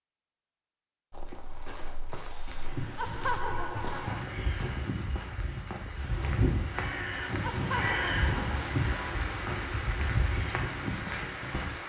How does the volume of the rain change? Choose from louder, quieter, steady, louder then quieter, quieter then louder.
louder.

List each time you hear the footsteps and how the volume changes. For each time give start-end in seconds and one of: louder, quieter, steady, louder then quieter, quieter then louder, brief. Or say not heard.
1.1-11.8 louder.